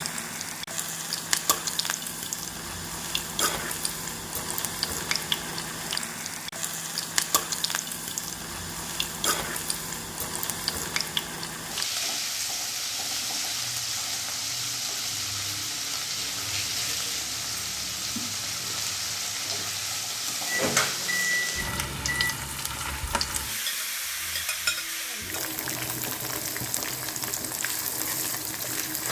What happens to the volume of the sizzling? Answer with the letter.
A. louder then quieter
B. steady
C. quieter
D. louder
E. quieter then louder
B.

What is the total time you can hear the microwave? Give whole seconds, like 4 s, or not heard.
2 s.